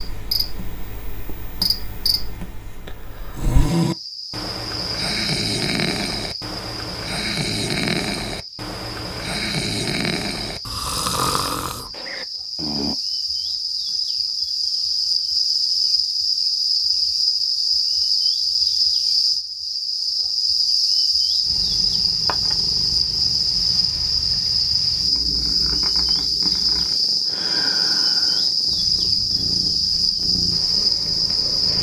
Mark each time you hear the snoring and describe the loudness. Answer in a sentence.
The snoring can be heard from 3.2 to 12.9 s, at a steady volume.